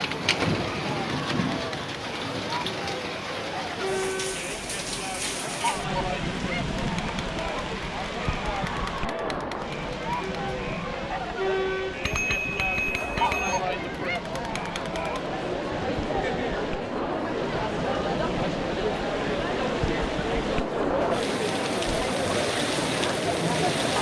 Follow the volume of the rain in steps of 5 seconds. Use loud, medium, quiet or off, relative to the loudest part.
loud, loud, medium, medium, loud.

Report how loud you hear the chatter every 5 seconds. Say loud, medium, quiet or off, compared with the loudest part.
medium, medium, loud, loud, loud.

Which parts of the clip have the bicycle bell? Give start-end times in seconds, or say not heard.
12.0-13.6.